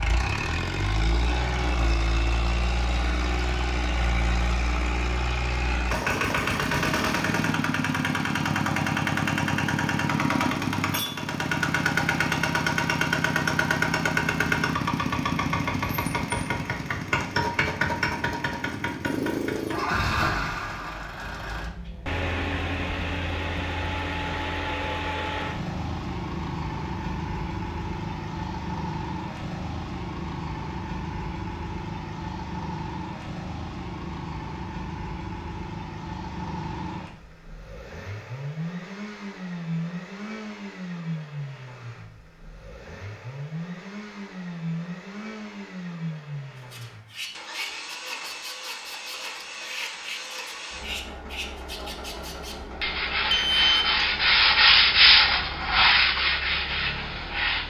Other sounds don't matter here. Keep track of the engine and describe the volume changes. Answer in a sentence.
The loudness of the engine goes down.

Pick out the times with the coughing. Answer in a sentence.
You can't hear the coughing here.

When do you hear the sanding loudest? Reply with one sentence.
The volume of the sanding peaks at 55 seconds.